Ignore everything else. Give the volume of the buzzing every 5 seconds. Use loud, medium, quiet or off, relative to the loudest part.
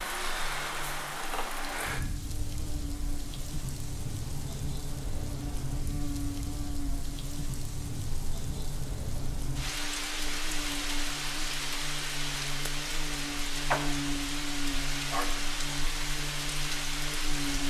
medium, loud, loud, loud.